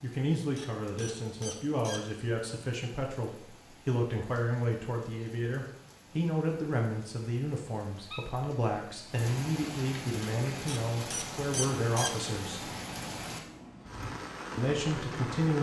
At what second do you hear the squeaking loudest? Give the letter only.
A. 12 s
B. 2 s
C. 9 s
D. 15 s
A.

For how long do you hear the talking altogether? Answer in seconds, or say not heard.
14 s.